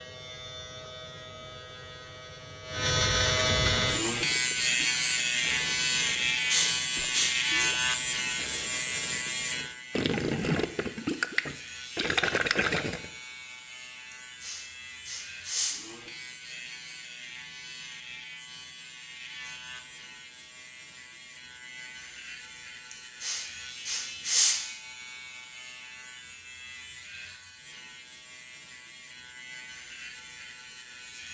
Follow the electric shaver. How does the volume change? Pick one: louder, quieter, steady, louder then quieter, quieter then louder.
quieter.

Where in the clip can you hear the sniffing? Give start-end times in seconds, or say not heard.
6.5-7.3, 14.1-15.8, 22.9-24.6.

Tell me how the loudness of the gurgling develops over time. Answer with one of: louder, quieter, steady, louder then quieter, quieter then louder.
louder.